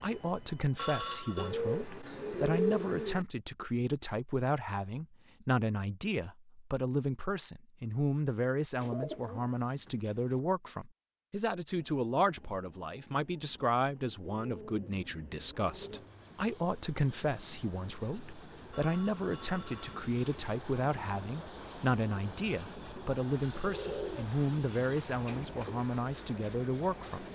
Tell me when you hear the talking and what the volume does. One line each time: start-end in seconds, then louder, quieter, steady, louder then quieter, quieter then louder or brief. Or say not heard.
0.0-27.2 steady.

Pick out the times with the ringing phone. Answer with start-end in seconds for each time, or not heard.
0.8-1.6, 18.7-19.9.